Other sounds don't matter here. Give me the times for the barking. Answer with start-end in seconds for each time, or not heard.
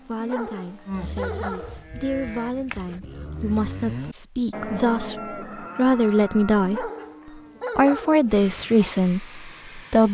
0.1-1.9, 6.6-8.3.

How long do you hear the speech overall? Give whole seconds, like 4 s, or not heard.
9 s.